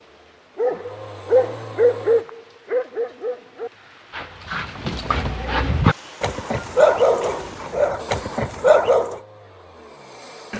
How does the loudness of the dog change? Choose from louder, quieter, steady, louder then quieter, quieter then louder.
quieter then louder.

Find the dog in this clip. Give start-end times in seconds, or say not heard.
0.6-9.2.